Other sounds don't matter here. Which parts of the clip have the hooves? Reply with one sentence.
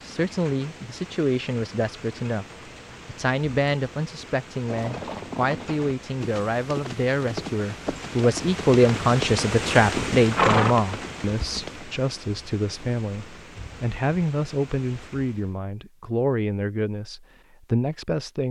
The hooves can be heard from 4.6 to 11.8 s.